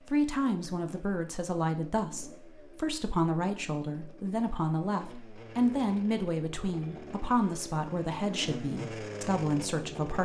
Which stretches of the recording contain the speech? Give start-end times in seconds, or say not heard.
0.1-10.1.